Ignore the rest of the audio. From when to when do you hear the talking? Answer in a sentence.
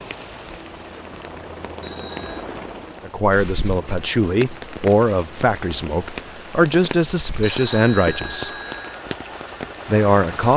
You can hear the talking from 3.0 to 8.5 s and from 9.8 to 10.5 s.